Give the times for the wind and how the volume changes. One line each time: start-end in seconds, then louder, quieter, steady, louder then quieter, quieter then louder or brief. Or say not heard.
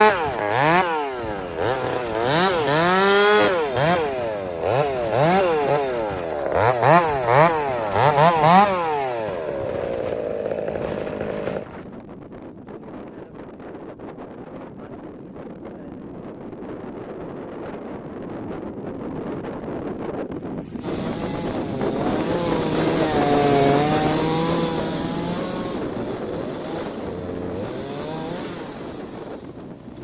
0.0-29.9 louder.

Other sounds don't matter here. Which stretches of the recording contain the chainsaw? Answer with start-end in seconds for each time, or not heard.
0.0-11.7, 20.8-29.9.